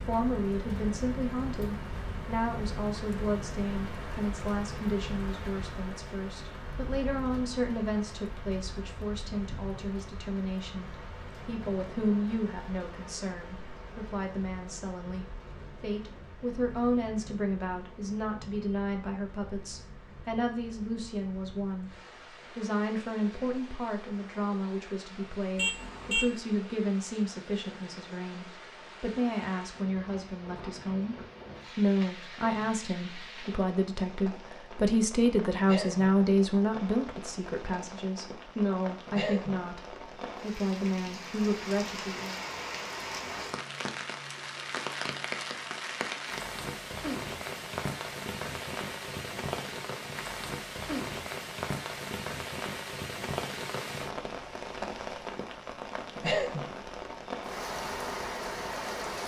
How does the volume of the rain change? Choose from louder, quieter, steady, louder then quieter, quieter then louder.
quieter then louder.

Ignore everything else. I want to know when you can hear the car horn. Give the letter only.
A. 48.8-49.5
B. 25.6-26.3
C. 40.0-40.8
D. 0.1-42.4
B.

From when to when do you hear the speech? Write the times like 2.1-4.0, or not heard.
0.1-42.4.